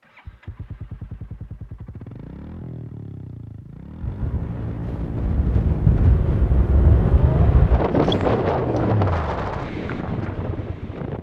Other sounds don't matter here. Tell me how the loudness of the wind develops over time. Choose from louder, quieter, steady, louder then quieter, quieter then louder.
louder then quieter.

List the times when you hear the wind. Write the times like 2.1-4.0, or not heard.
4.0-11.1.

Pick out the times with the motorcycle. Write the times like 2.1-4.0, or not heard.
0.0-11.1.